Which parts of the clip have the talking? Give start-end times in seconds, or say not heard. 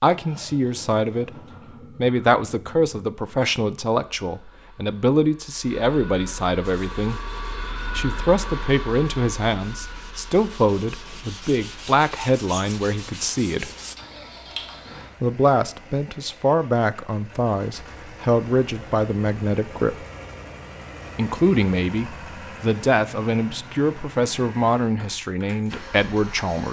0.0-1.3, 1.9-7.2, 8.0-13.7, 15.2-20.1, 21.1-26.6.